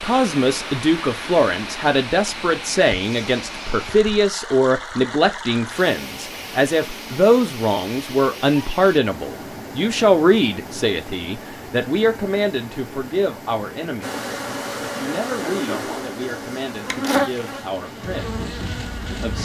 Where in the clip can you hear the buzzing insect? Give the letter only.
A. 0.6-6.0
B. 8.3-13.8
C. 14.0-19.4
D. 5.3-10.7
C.